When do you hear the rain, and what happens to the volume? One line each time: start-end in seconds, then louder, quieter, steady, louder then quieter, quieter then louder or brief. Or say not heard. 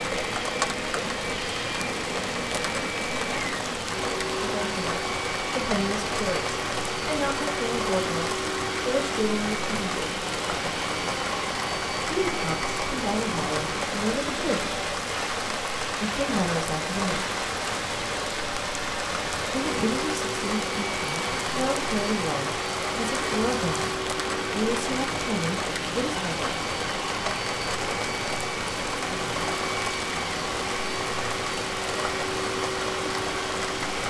0.0-34.0 steady.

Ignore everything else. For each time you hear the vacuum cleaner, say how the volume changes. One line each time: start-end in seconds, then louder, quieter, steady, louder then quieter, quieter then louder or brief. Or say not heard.
0.0-34.0 steady.